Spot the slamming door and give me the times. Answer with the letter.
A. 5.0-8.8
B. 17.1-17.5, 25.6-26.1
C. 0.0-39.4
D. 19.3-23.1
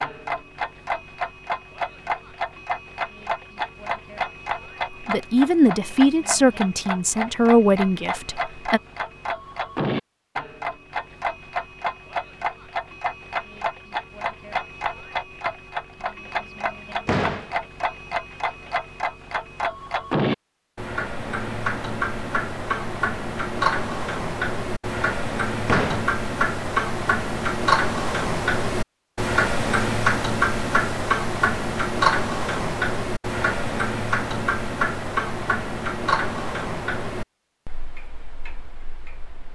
B.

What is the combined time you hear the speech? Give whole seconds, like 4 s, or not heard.
4 s.